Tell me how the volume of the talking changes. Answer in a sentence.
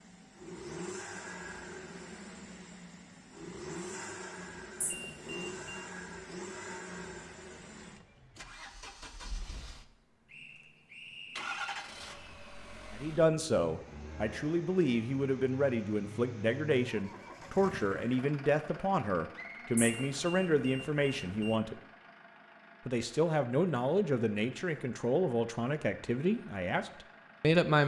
The loudness of the talking stays about the same.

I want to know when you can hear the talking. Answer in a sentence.
You can hear the talking from 12.9 to 21.8 s and from 22.9 to 27.8 s.